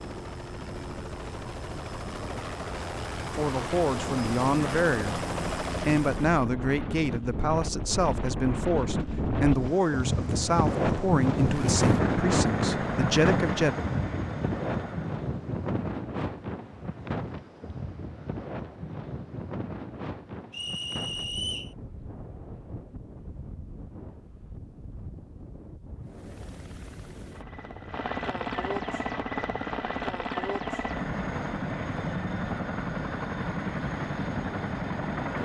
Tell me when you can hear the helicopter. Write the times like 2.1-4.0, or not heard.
0.0-6.4, 11.4-15.2, 26.0-35.3.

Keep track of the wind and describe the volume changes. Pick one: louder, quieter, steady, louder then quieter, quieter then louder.
louder then quieter.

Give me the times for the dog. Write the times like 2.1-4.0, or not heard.
not heard.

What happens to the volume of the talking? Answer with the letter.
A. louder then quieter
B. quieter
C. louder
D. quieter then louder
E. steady
E.